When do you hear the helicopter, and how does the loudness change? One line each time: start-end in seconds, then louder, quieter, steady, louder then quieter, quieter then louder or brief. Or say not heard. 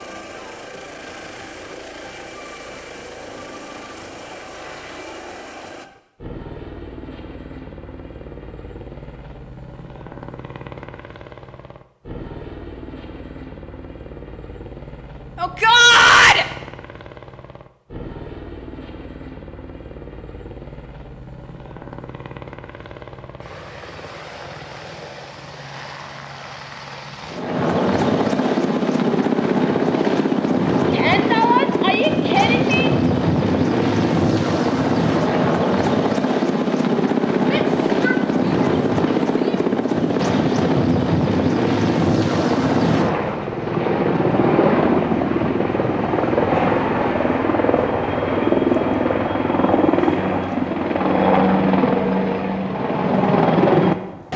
0.0-54.3 louder.